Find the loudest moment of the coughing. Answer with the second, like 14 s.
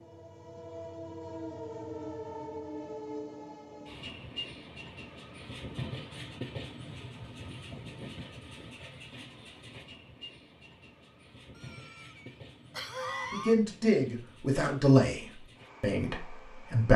13 s.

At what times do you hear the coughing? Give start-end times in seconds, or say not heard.
11.6-13.6.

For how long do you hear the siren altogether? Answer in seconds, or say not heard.
not heard.